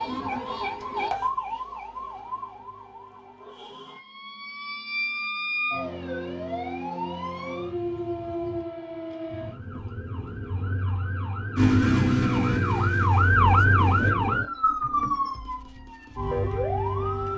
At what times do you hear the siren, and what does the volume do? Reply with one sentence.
The siren can be heard from 0.0 to 17.3 s, getting louder.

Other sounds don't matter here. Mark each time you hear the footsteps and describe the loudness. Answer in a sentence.
You can't hear the footsteps here.